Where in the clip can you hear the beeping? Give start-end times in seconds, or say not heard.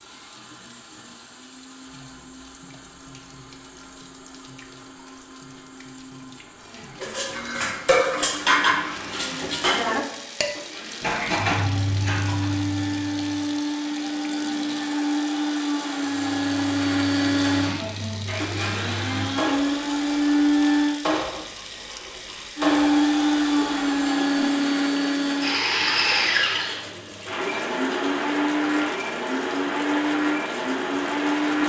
not heard.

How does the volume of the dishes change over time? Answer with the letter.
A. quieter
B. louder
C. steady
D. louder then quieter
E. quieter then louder
E.